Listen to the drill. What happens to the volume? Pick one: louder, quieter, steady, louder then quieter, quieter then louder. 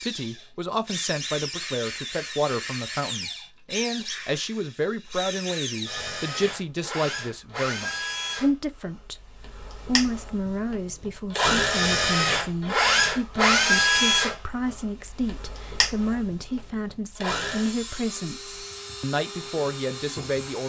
louder then quieter.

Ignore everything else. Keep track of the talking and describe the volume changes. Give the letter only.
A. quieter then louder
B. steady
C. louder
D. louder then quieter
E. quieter
B.